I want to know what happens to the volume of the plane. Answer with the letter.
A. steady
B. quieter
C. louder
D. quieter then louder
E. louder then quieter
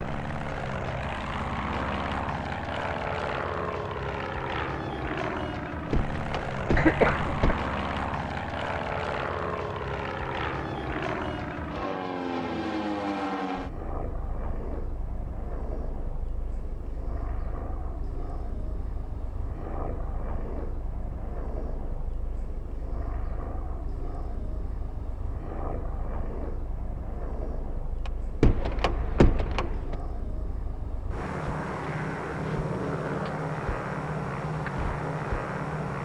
D.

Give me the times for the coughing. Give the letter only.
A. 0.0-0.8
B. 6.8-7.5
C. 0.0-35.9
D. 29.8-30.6
B.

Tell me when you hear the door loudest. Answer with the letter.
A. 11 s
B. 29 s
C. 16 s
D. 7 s
B.